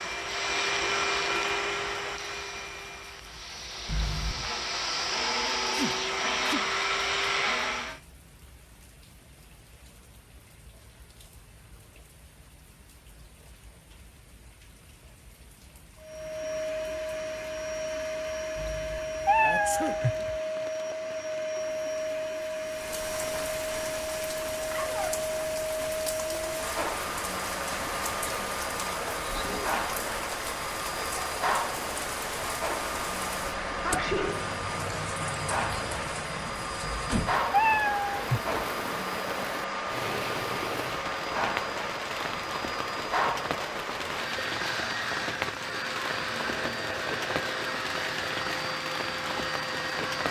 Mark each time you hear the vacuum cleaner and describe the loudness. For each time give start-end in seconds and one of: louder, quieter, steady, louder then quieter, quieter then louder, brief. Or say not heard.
0.0-8.0 quieter then louder
16.0-50.2 steady.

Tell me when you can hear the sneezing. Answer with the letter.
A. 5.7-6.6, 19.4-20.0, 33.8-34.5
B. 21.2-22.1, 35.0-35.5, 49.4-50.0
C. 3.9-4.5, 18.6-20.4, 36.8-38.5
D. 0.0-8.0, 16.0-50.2
A.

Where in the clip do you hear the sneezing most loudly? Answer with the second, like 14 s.
34 s.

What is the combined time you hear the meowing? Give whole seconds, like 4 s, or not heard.
4 s.